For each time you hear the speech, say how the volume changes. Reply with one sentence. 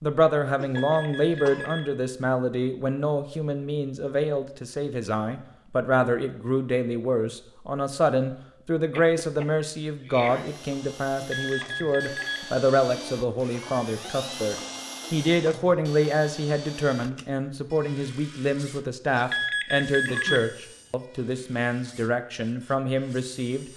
You can hear the speech from 0.0 to 23.6 s, at a steady volume.